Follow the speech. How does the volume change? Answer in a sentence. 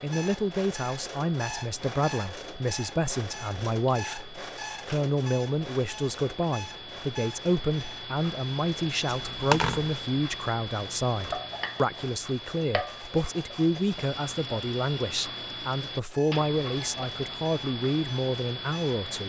The loudness of the speech stays about the same.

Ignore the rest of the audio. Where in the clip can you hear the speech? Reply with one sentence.
The speech can be heard from 0.0 to 19.2 s.